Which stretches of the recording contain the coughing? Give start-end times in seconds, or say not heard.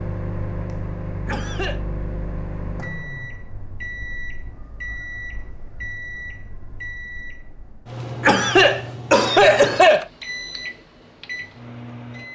1.2-1.8, 8.2-10.1.